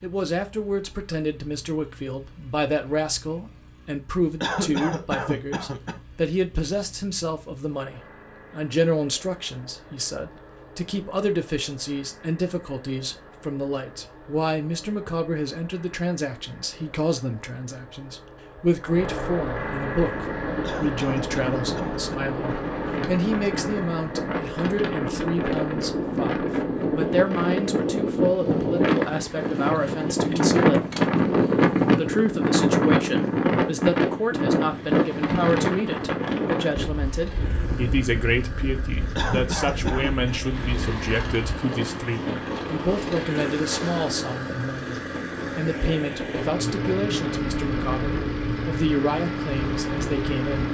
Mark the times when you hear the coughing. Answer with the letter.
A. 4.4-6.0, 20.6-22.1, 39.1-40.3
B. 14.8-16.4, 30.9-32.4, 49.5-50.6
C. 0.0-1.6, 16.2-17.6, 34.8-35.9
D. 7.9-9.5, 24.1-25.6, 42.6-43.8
A.